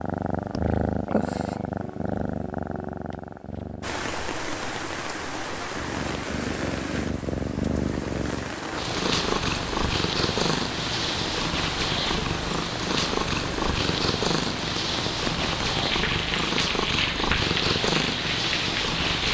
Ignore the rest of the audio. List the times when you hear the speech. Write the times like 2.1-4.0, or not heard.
not heard.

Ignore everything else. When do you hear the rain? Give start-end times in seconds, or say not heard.
3.8-19.3.